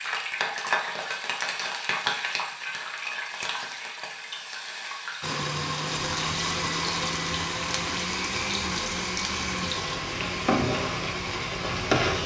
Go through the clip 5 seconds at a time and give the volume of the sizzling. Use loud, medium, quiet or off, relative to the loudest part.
loud, medium, loud.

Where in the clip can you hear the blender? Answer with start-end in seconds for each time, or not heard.
5.2-12.2.